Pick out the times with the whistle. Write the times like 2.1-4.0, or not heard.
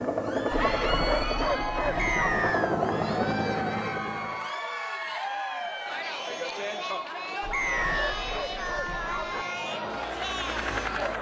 1.9-2.8, 7.5-8.2.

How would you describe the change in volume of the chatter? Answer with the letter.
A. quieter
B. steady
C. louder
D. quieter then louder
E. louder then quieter
B.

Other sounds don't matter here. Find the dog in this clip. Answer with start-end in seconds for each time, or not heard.
0.5-2.5, 7.4-9.4.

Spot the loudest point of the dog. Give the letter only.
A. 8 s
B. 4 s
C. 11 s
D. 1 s
D.